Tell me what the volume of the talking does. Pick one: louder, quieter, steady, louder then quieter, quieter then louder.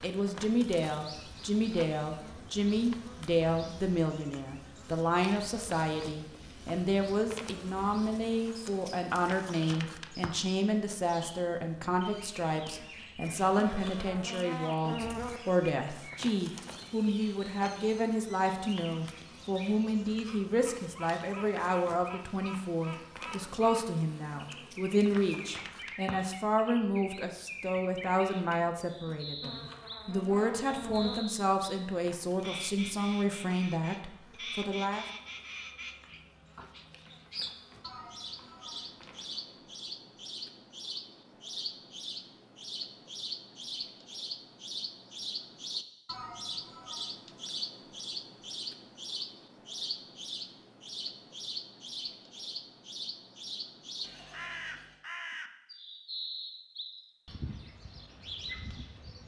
steady.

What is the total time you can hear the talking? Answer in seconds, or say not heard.
35 s.